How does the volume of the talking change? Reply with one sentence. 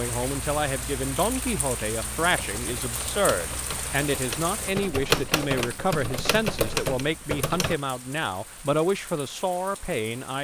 The volume of the talking stays about the same.